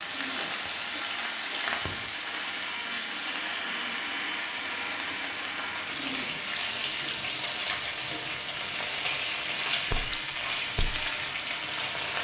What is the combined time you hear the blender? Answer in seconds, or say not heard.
12 s.